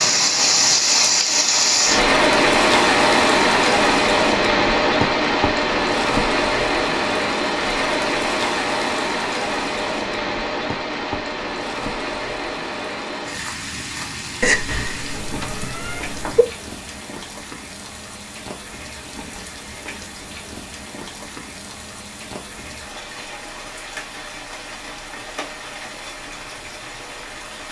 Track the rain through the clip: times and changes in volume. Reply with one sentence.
The rain can be heard from 0.0 to 27.6 s, getting quieter.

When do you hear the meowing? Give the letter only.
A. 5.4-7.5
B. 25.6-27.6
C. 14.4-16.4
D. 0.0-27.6
C.